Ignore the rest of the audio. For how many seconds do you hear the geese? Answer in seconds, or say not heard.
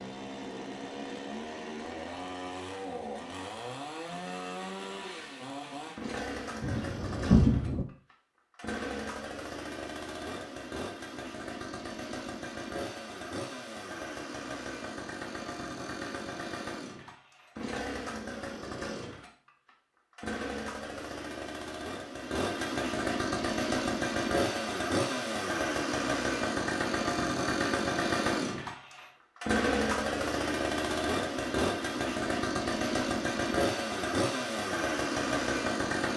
not heard.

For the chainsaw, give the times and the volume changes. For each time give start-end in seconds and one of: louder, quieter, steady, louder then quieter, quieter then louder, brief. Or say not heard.
0.0-36.1 louder.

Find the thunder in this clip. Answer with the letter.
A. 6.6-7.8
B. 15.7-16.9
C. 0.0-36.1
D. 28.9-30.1
A.